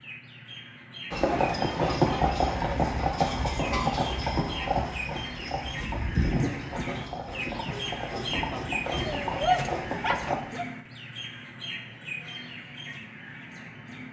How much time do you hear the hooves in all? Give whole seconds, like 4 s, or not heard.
9 s.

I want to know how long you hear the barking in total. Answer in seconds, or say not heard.
2 s.